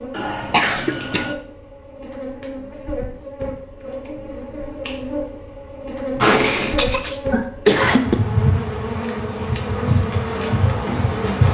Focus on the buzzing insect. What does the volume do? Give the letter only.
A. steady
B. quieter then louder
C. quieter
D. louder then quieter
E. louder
E.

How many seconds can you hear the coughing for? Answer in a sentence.
You can hear the coughing for 3 seconds altogether.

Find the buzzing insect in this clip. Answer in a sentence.
You can hear the buzzing insect from 0.0 to 11.4 s.